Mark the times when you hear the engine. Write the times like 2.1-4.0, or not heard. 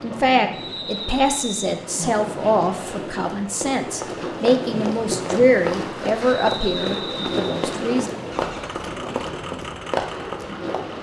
8.2-10.8.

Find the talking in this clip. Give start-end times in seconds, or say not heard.
0.0-8.2.